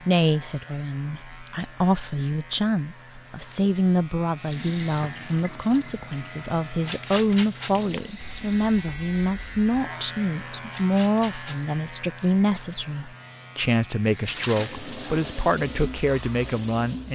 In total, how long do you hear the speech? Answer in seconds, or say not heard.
17 s.